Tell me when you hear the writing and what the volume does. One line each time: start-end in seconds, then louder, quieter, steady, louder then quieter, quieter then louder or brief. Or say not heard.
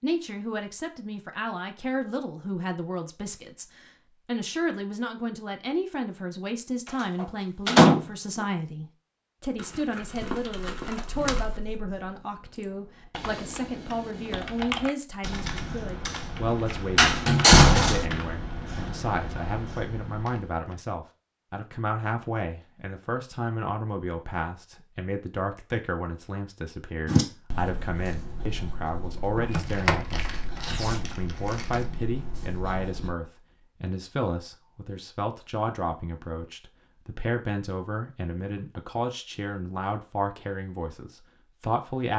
27.1-33.1 steady.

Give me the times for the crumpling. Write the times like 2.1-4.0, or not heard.
9.6-11.6, 29.5-31.9.